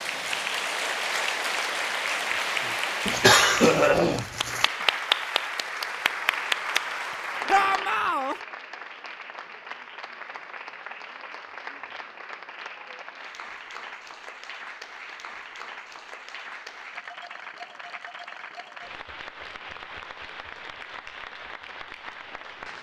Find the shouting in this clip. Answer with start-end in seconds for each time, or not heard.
7.5-8.3.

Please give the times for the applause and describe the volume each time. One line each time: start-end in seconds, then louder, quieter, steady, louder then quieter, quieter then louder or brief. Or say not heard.
0.0-22.7 quieter.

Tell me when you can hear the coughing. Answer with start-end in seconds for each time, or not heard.
3.0-4.7.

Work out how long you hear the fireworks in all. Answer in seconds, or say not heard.
not heard.